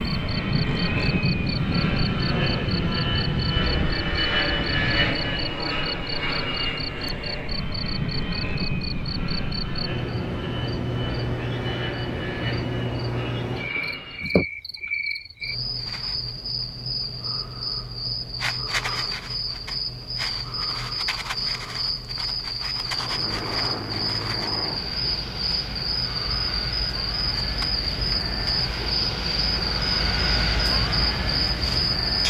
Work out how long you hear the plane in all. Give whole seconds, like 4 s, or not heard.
24 s.